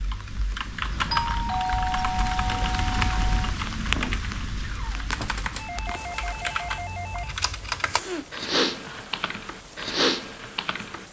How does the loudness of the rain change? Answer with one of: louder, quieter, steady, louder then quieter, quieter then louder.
louder then quieter.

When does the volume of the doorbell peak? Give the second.
2 s.